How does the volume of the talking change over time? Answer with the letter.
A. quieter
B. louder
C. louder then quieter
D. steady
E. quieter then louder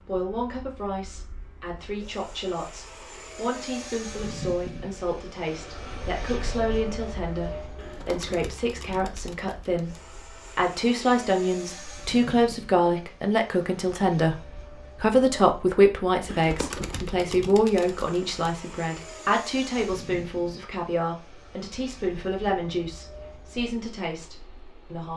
C.